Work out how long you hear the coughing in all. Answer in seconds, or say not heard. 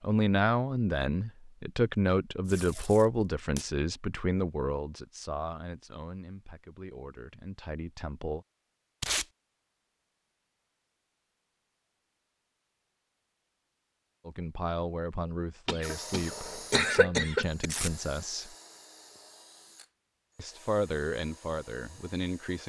2 s.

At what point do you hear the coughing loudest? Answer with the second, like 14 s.
17 s.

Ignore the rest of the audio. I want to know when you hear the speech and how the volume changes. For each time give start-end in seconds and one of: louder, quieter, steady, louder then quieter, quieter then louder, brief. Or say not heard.
0.0-8.4 quieter
14.2-18.6 steady
20.4-22.6 brief.